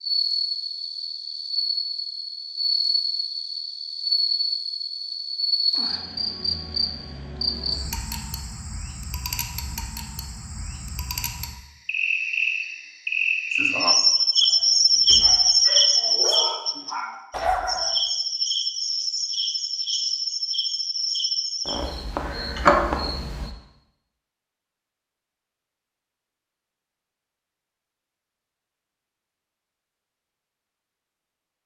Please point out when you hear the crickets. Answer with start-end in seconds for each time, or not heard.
0.0-23.5.